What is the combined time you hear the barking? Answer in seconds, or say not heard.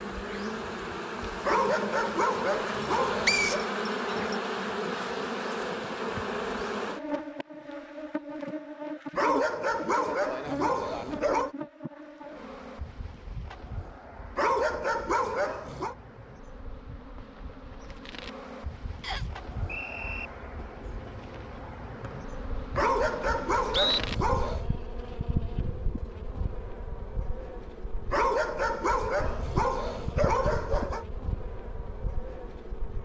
11 s.